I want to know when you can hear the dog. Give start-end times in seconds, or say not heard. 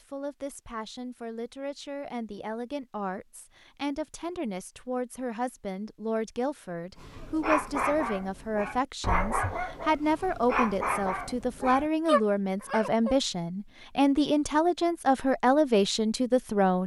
7.0-13.2.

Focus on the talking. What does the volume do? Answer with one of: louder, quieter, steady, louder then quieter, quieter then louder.
louder.